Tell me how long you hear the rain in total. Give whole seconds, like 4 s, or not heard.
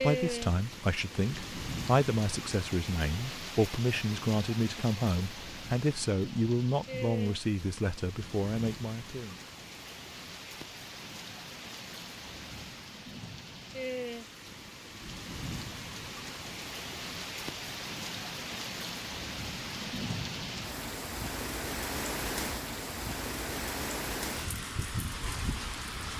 26 s.